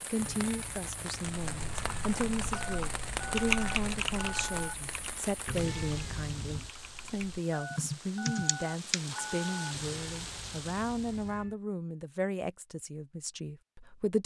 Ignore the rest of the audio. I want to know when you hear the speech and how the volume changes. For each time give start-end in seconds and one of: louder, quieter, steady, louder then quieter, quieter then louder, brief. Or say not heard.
0.0-14.2 steady.